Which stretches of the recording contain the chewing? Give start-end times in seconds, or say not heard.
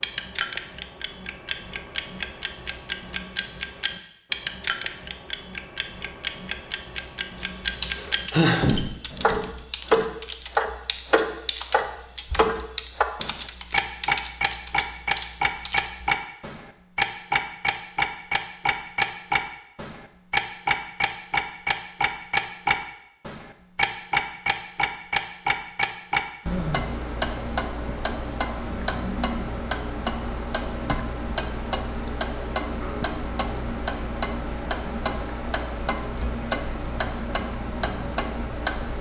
not heard.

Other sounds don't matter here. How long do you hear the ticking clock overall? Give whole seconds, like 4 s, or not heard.
39 s.